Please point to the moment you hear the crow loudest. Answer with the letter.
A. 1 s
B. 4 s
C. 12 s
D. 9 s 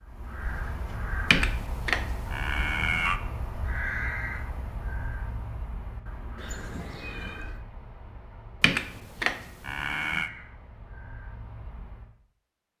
B.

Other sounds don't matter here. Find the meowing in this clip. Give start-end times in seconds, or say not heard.
6.3-7.6.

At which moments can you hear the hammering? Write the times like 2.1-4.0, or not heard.
not heard.